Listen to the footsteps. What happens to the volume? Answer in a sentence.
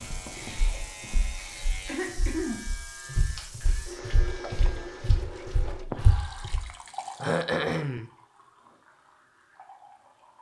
The loudness of the footsteps goes down, then up.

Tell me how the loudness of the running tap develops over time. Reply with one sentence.
The volume of the running tap goes up, then down.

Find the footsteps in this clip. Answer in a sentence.
You can hear the footsteps from 0.0 to 6.6 s.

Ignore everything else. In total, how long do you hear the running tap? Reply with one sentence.
You can hear the running tap for 10 seconds altogether.